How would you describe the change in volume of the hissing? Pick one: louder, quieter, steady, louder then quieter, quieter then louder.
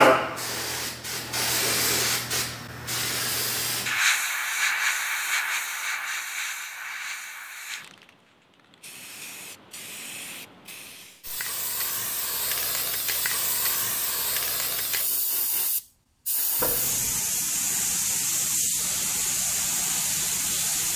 quieter then louder.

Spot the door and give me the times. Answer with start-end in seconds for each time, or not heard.
16.6-17.2.